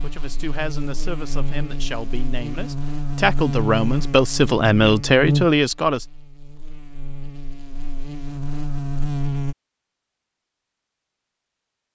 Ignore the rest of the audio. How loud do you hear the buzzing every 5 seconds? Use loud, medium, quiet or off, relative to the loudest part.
loud, loud, off.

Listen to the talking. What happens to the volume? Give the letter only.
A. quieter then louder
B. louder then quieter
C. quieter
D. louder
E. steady
D.